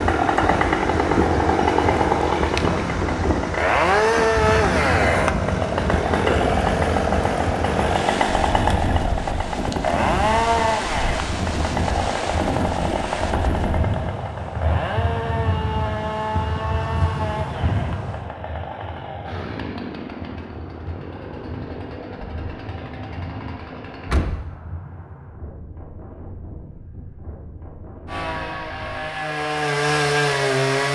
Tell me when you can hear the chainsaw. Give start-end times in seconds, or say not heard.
0.0-24.3, 28.1-30.8.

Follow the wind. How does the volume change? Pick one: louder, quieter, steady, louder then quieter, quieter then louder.
quieter.